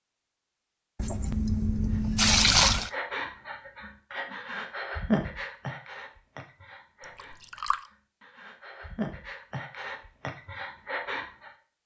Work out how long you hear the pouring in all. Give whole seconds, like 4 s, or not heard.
3 s.